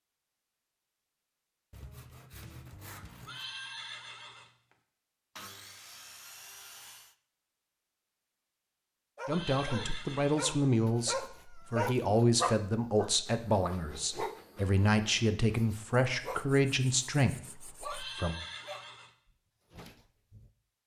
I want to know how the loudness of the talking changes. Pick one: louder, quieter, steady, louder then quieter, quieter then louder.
steady.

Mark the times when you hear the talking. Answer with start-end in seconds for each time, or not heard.
9.2-18.4.